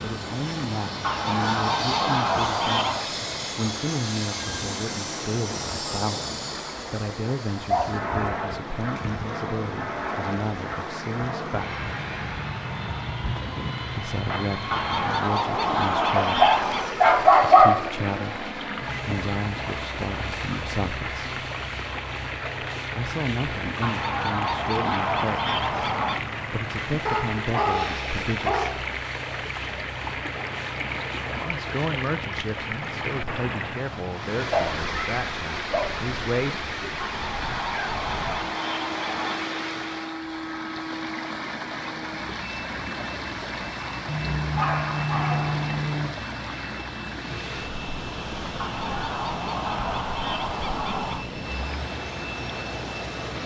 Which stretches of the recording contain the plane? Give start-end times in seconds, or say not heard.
0.0-53.4.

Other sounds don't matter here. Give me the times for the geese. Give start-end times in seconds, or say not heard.
1.0-3.1, 14.7-16.9, 23.8-26.2, 37.0-39.4, 48.5-51.2.